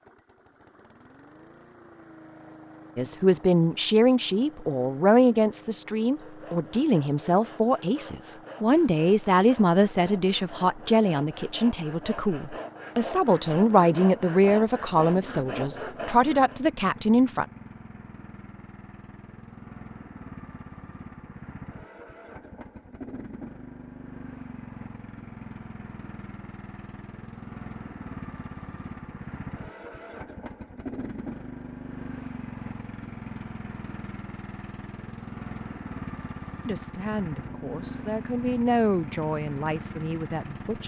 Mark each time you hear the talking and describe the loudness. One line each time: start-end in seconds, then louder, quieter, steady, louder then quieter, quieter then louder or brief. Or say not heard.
3.0-17.4 steady
36.6-40.8 louder then quieter.